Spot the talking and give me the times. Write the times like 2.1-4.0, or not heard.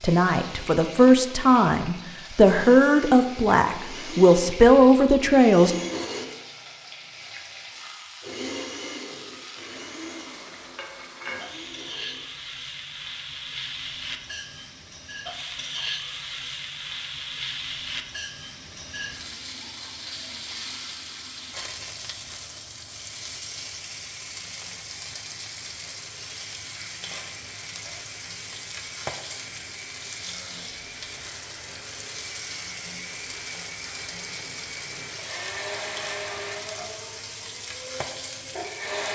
0.0-5.8.